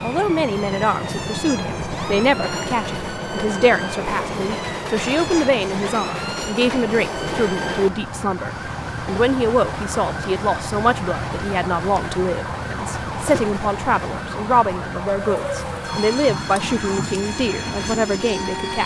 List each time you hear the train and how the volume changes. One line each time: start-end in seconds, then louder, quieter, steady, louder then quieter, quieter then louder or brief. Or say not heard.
0.0-18.8 steady.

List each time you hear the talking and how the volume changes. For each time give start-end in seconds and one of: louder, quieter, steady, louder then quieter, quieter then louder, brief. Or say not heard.
0.0-18.8 steady.